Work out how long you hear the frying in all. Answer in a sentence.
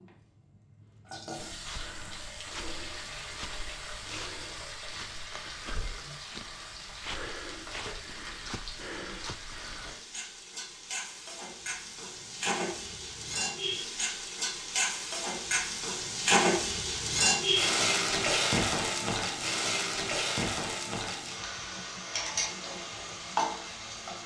The frying can be heard for 24 seconds in total.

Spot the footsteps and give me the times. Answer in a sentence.
You can hear the footsteps from 1.4 to 9.9 s.